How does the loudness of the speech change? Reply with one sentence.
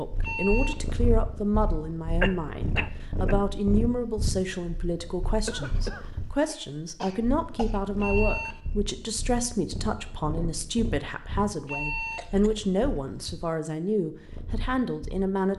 The loudness of the speech stays about the same.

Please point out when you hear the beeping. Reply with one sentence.
The beeping can be heard from 0.2 to 0.8 s, from 8.0 to 8.6 s and from 11.7 to 12.3 s.